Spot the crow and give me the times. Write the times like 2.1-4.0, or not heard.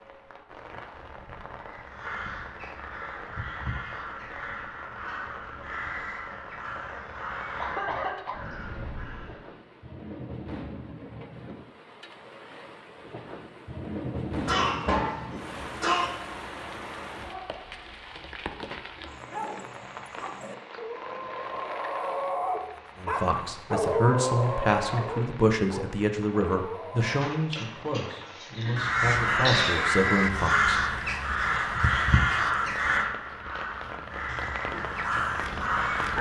1.6-9.4, 28.8-36.1.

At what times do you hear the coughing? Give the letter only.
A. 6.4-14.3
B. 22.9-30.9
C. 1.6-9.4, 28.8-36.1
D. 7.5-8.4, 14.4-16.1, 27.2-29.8
D.